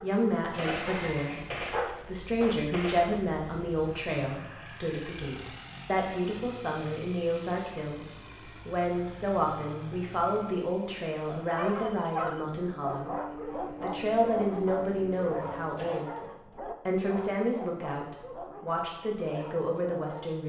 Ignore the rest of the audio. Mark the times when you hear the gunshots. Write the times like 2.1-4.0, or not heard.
0.6-3.2.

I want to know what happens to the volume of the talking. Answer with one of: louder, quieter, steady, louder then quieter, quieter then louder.
steady.